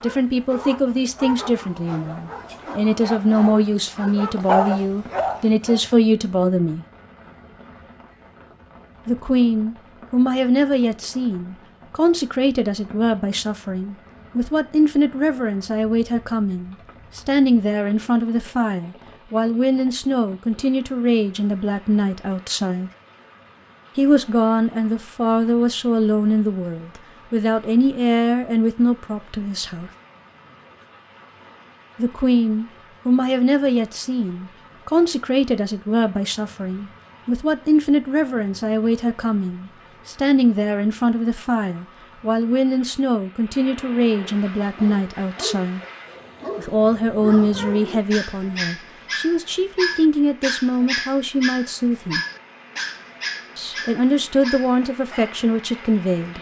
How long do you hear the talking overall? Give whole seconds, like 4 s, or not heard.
49 s.